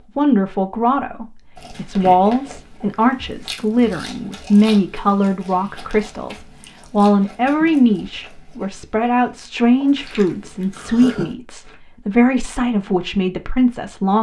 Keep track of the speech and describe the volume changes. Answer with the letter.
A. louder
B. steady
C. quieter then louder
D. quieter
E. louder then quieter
B.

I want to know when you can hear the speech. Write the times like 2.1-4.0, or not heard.
0.1-14.1.